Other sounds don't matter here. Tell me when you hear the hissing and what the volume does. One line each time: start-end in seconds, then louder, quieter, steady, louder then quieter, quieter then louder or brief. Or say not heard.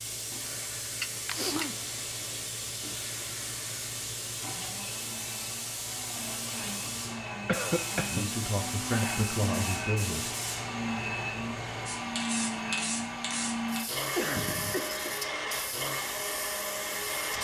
0.0-17.3 steady.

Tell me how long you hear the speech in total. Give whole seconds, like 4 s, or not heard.
2 s.